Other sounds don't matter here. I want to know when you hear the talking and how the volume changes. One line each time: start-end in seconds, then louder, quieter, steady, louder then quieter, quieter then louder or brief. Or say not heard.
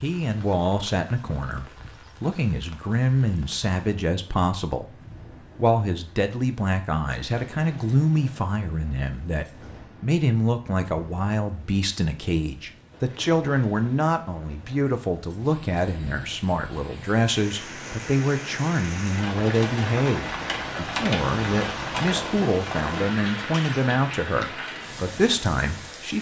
0.0-4.8 quieter then louder
5.5-26.1 steady.